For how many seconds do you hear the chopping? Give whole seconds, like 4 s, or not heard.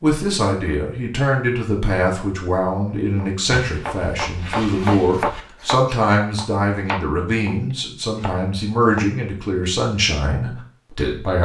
6 s.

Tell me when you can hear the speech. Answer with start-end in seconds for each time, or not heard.
0.0-11.3.